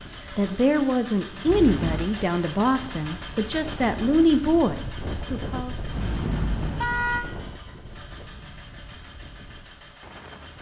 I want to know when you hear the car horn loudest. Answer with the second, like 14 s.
7 s.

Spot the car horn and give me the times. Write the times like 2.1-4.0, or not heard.
1.4-2.1, 5.8-7.2.